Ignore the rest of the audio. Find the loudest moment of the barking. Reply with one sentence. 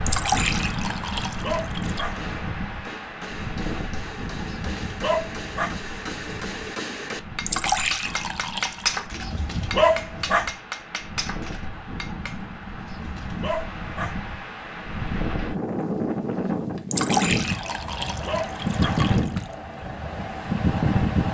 The loudest moment of the barking is at 10 seconds.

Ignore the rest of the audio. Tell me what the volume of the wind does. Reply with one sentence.
The loudness of the wind goes down, then up.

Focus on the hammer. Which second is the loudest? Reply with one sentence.
The loudest moment of the hammer is at 9 seconds.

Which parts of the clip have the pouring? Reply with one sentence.
The pouring can be heard from 0.1 to 2.1 s, from 7.5 to 9.0 s and from 16.9 to 19.4 s.